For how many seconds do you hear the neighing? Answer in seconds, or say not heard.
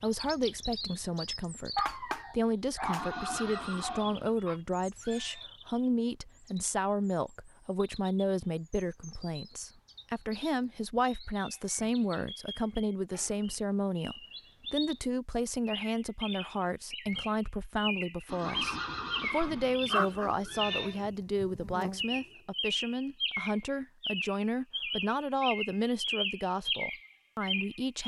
5 s.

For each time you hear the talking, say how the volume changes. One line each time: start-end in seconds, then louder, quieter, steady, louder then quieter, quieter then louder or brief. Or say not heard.
0.0-28.0 steady.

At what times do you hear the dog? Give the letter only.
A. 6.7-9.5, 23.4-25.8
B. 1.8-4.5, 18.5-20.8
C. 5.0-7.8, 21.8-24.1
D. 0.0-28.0
B.